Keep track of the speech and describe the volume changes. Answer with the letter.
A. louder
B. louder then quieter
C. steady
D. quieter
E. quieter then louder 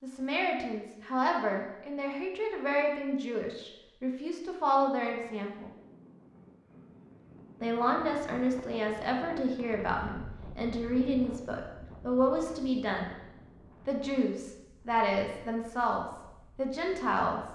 C.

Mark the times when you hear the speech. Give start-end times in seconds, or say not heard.
0.0-5.7, 7.6-13.1, 13.8-17.5.